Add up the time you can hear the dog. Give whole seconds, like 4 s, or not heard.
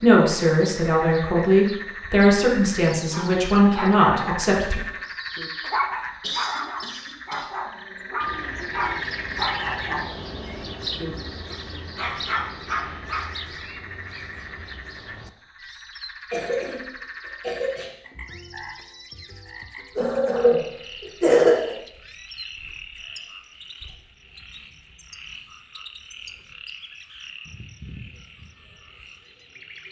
10 s.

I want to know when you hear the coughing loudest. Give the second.
21 s.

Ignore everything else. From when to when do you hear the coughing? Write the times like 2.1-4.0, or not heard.
6.2-7.5, 16.3-17.9, 19.9-21.8.